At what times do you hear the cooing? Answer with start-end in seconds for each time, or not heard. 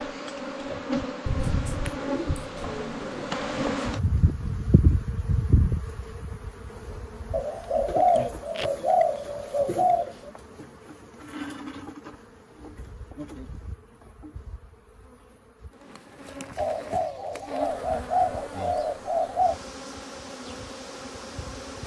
1.2-3.8, 7.3-10.3, 16.6-19.6.